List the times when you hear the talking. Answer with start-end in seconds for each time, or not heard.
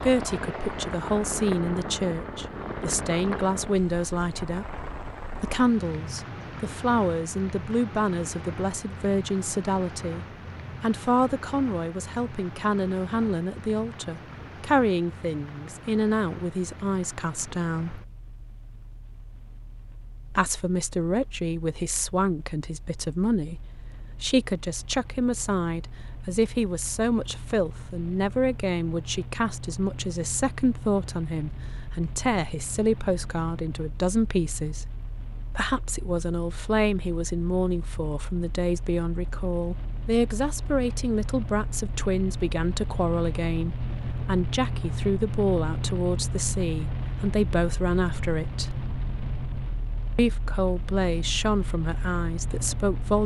0.0-18.0, 20.3-48.8, 50.1-53.2.